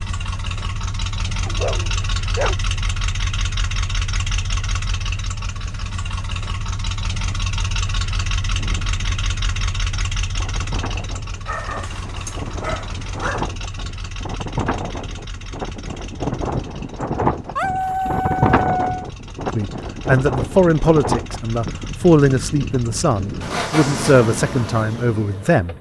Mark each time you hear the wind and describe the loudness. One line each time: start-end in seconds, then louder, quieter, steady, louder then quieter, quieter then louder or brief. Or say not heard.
8.4-25.7 louder then quieter.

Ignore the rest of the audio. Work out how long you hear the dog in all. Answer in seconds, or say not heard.
5 s.